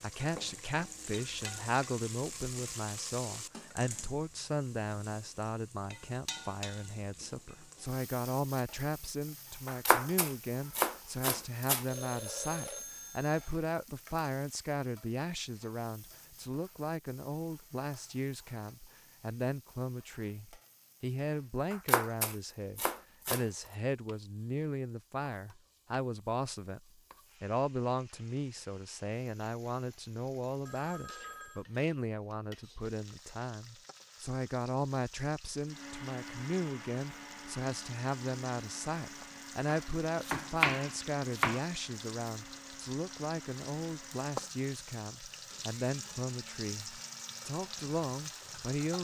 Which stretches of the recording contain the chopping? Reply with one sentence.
You can hear the chopping from 9.7 to 11.8 s, from 21.7 to 23.4 s and from 39.6 to 41.6 s.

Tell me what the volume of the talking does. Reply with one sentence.
The loudness of the talking stays about the same.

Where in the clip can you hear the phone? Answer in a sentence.
You can hear the phone from 11.8 to 13.5 s and from 30.6 to 31.6 s.